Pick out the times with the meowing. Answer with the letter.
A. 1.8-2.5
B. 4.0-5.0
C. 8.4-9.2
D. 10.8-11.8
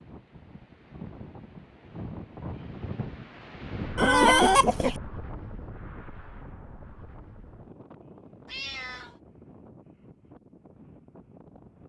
C.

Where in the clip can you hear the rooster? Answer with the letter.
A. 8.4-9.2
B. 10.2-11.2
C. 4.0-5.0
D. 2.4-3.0
C.